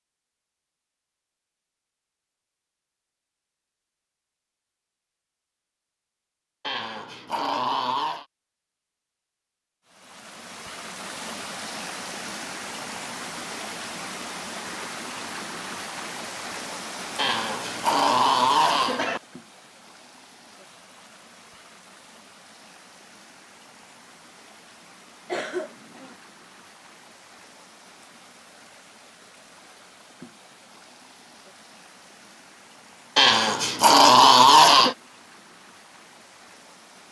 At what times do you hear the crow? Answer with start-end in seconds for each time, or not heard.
not heard.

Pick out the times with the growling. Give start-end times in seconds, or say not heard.
6.6-8.2, 17.1-19.2, 33.1-35.0.